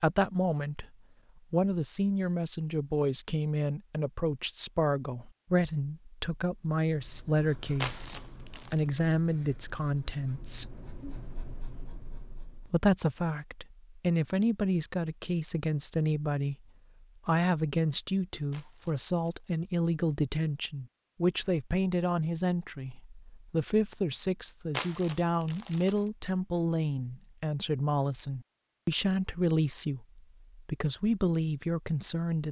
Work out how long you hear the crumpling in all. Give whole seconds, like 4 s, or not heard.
3 s.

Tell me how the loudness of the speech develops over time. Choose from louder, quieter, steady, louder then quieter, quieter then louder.
steady.